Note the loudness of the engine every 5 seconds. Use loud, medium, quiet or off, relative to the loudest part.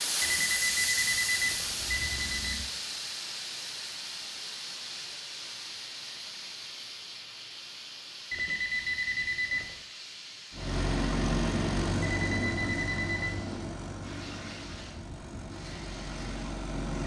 off, off, loud, medium.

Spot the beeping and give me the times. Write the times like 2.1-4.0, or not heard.
0.2-2.6, 8.3-9.8, 12.0-13.3.